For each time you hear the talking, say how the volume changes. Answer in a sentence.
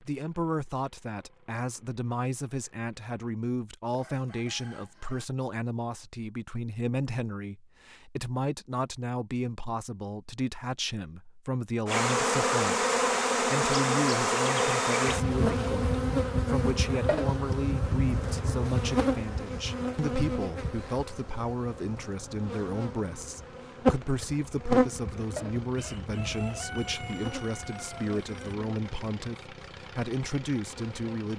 You can hear the talking from 0.0 to 31.3 s, at a steady volume.